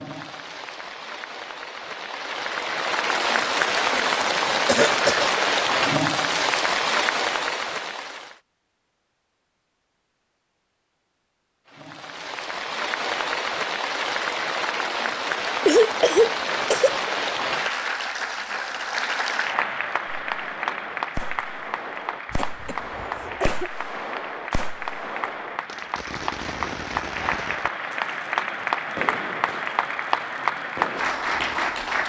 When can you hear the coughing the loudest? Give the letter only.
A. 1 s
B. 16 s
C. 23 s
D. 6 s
B.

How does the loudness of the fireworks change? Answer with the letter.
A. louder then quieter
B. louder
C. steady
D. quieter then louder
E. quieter
C.